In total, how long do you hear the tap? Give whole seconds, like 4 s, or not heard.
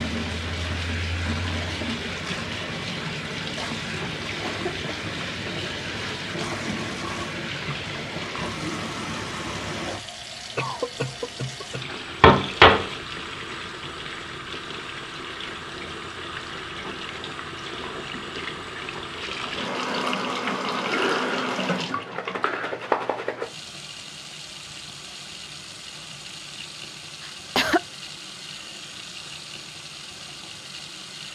31 s.